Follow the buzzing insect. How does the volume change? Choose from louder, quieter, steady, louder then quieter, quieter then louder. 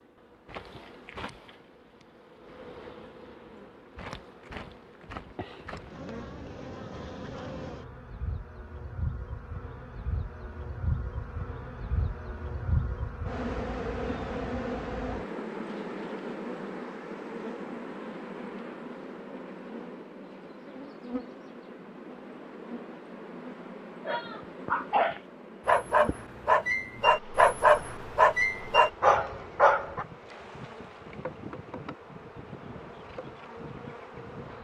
louder then quieter.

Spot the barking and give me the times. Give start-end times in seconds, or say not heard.
24.1-30.1.